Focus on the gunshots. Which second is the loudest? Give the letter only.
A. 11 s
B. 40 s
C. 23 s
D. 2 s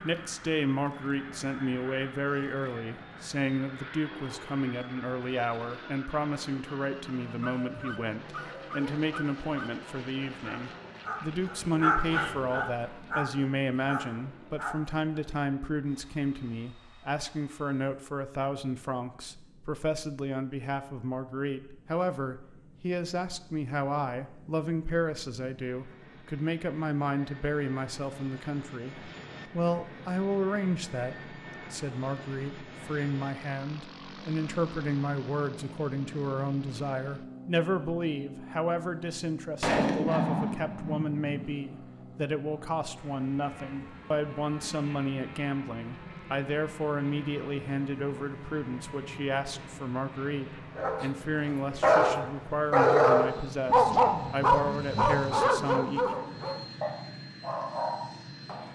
B.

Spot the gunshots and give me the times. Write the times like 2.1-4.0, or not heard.
39.6-41.4.